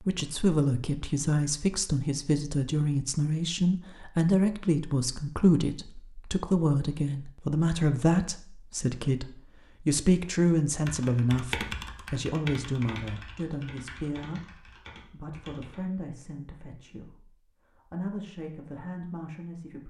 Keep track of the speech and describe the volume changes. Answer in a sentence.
The loudness of the speech goes down.